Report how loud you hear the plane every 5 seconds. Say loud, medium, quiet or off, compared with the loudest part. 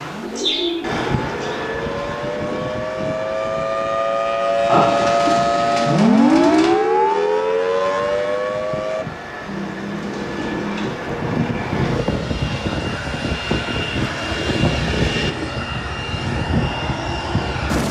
medium, medium, loud, loud.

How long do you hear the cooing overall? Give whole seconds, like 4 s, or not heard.
7 s.